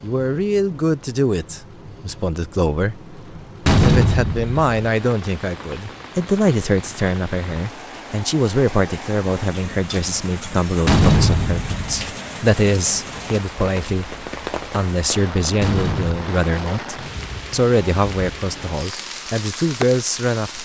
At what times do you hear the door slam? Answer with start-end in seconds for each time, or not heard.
3.6-4.8, 10.8-11.9, 15.6-16.2.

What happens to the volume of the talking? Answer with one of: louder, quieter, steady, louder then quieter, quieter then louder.
steady.